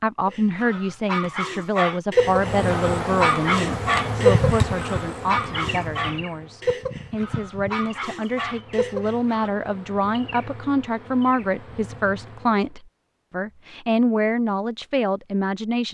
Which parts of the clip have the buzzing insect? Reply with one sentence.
You can hear the buzzing insect from 2.1 to 12.8 s.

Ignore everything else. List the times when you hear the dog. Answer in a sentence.
The dog can be heard from 0.2 to 9.5 s.